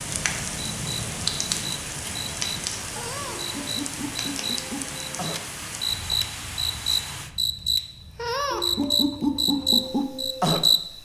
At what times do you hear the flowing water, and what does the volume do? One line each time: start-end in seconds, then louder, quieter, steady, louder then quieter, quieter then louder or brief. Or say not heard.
0.0-7.3 steady.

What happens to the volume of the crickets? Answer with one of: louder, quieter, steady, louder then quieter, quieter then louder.
louder.